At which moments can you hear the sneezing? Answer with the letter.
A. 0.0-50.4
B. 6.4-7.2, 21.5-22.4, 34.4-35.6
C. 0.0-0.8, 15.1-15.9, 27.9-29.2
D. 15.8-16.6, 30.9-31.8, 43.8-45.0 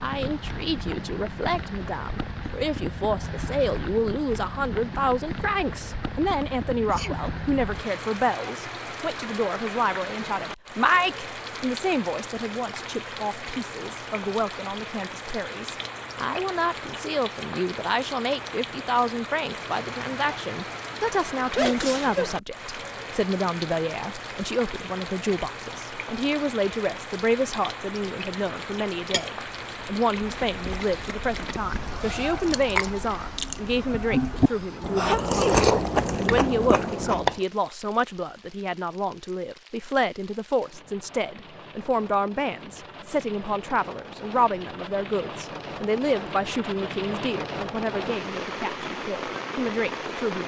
B.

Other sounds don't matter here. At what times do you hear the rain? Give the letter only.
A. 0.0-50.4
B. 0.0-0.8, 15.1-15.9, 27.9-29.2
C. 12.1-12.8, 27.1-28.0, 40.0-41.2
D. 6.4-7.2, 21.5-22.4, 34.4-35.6
A.